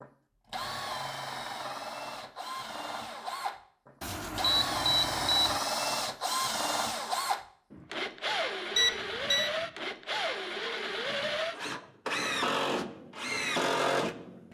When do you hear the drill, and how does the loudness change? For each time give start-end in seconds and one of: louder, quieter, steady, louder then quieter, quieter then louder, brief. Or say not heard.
0.0-14.5 louder.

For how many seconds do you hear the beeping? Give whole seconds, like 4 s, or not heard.
2 s.